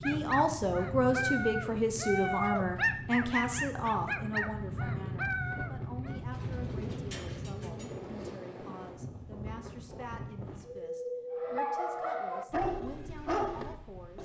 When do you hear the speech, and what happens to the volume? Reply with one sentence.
You can hear the speech from 0.1 to 14.1 s, getting quieter.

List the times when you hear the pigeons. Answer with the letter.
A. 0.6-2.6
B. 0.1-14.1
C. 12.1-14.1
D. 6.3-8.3
D.